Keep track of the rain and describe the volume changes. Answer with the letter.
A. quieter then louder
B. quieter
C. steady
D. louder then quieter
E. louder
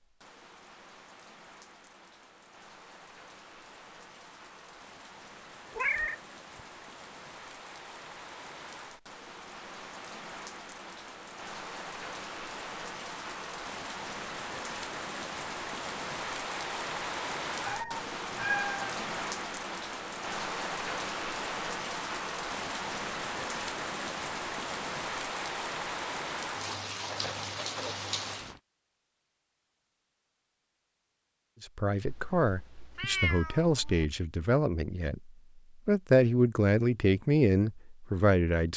E.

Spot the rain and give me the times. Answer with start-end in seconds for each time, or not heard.
0.0-28.6.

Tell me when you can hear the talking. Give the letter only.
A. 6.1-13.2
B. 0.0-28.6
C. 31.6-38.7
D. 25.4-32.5
C.